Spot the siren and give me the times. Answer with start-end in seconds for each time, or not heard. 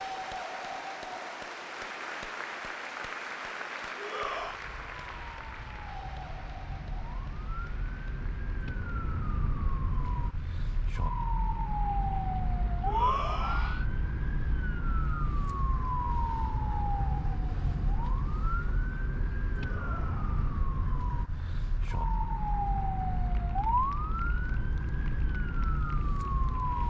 4.2-26.8.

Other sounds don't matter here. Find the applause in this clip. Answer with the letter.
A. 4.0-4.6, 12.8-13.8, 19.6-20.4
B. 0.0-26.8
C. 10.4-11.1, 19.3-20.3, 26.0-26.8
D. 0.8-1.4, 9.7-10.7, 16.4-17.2
B.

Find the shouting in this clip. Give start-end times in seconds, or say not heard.
4.0-4.6, 12.8-13.8, 19.6-20.4.